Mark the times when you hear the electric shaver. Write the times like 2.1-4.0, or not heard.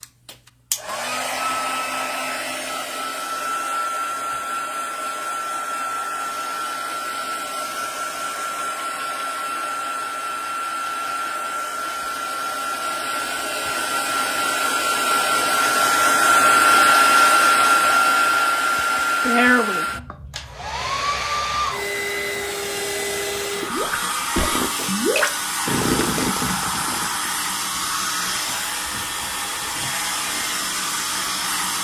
not heard.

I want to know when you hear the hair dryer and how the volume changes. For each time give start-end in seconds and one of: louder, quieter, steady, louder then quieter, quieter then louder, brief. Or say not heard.
0.0-31.7 louder then quieter.